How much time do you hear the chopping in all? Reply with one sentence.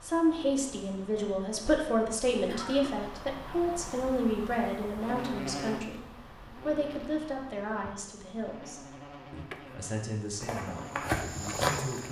The chopping can't be heard in this clip.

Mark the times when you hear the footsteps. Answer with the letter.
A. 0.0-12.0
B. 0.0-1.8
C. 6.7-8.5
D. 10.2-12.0
D.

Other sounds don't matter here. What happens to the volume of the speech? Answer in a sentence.
The loudness of the speech goes down.